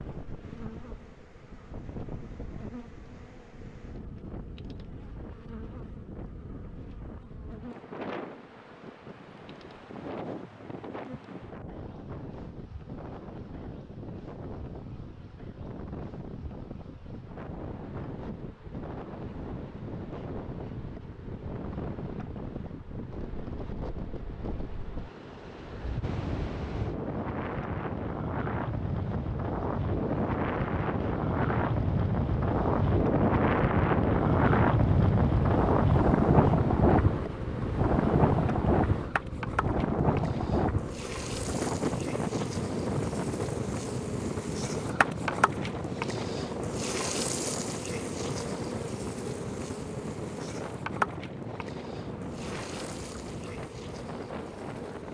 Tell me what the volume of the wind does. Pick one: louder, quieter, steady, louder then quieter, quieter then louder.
louder then quieter.